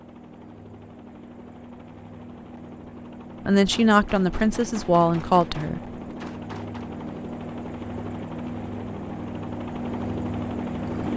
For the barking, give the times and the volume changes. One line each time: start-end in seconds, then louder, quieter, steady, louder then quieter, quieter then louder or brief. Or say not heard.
not heard.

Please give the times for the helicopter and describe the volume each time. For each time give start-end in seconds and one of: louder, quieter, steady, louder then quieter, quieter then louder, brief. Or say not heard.
0.0-11.1 louder.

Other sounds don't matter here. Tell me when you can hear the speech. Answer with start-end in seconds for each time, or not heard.
3.5-5.8.